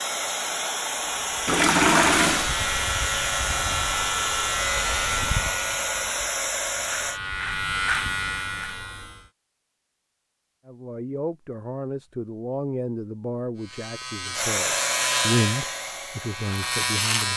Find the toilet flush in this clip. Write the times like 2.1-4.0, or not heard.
1.4-2.5.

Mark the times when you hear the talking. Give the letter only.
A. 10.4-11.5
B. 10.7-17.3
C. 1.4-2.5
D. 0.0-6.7
B.